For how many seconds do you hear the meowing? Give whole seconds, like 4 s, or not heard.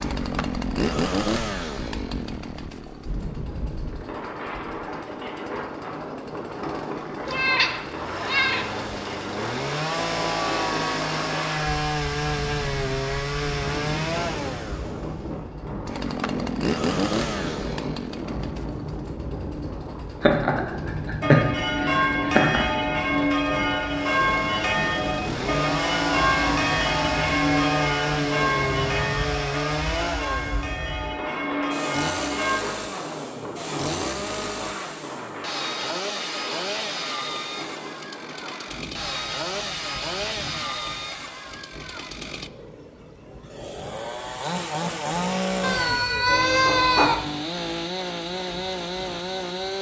3 s.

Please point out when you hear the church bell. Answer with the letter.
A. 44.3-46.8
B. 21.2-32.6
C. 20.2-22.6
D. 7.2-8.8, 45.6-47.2
B.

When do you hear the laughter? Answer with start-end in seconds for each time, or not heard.
20.2-22.6.